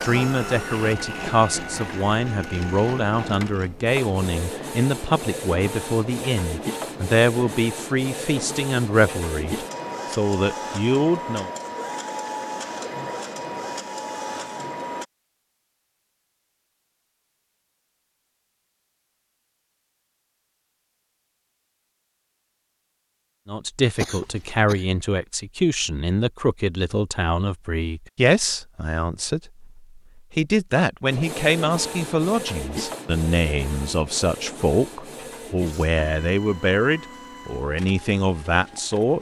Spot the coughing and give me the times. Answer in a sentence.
The coughing can be heard from 23.9 to 24.9 s.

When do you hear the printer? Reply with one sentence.
The printer can be heard from 0.0 to 15.1 s and from 31.1 to 39.1 s.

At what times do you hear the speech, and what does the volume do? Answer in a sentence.
You can hear the speech from 0.0 to 11.5 s, at a steady volume; and from 23.4 to 39.1 s, at a steady volume.